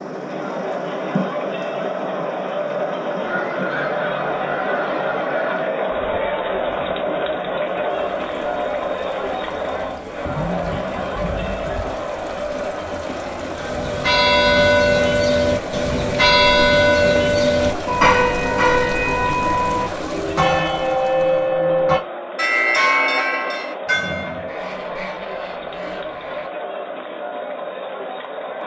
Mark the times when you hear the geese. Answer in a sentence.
You can hear the geese from 3.2 to 5.7 s, from 10.2 to 12.0 s and from 24.4 to 26.5 s.